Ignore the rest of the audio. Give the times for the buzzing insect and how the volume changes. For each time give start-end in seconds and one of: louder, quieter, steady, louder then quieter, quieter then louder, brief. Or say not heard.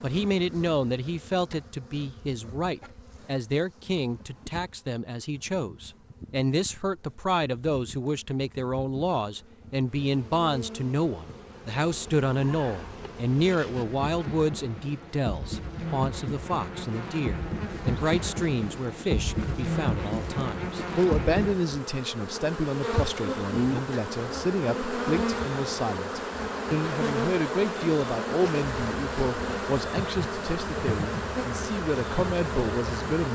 0.0-33.3 louder.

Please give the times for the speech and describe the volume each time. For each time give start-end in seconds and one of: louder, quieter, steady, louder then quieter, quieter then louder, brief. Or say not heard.
0.0-33.3 steady.